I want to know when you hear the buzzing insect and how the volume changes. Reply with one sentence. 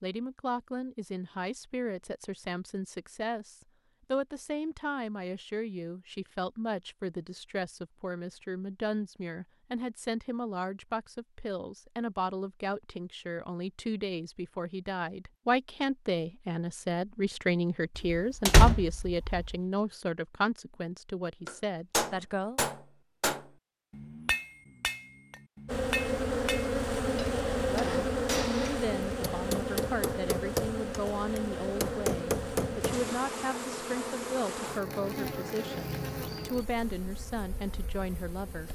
You can hear the buzzing insect from 25.6 to 38.7 s, getting quieter.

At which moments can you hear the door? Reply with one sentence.
You can hear the door from 17.9 to 19.6 s.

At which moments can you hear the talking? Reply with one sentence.
The talking can be heard from 0.0 to 22.6 s and from 27.6 to 38.7 s.